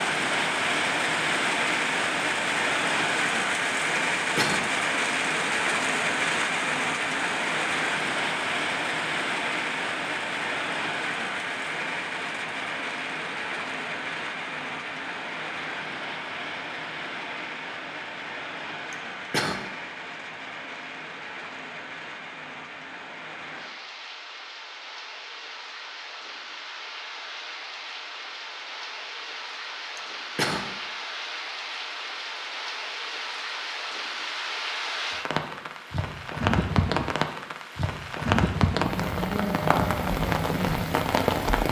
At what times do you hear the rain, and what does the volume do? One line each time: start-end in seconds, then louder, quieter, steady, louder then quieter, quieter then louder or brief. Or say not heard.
0.0-41.6 quieter then louder.